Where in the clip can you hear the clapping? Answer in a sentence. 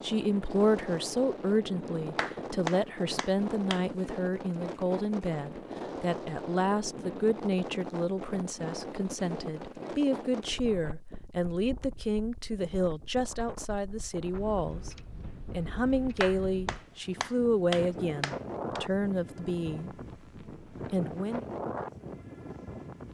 You can hear the clapping from 2.1 to 3.9 s and from 16.2 to 18.8 s.